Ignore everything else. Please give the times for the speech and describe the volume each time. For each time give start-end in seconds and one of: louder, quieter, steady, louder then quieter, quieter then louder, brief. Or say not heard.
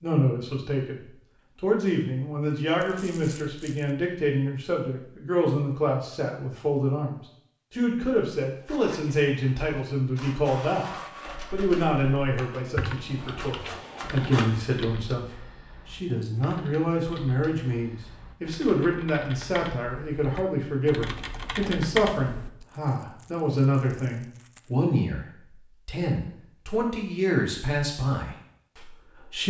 0.0-29.4 steady.